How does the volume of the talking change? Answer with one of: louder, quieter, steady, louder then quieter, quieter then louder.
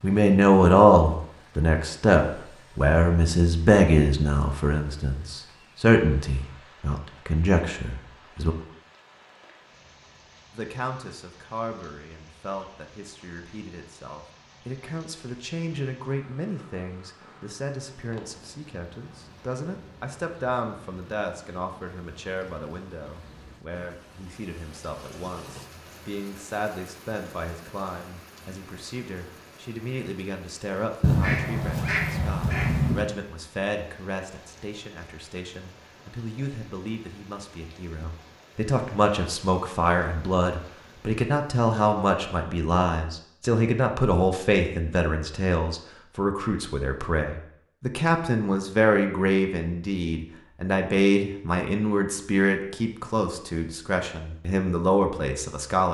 quieter then louder.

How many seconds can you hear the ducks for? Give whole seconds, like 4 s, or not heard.
2 s.